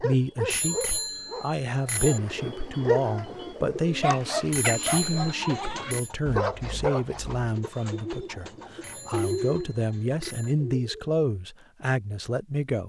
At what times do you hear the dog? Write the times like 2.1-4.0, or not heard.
0.0-7.5.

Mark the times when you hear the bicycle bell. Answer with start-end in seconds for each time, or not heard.
0.5-2.2, 4.5-6.1, 8.8-10.6.